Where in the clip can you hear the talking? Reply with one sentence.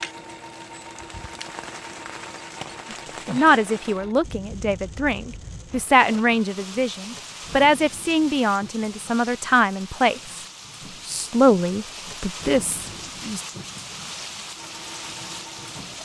You can hear the talking from 3.3 to 10.4 s and from 11.1 to 13.4 s.